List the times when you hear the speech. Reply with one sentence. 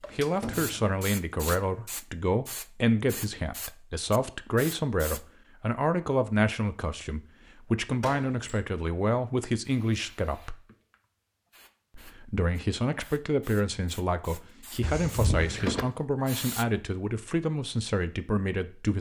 The speech can be heard from 0.1 to 10.6 s and from 11.9 to 18.9 s.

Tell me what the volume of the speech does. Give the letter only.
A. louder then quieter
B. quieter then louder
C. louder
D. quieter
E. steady
E.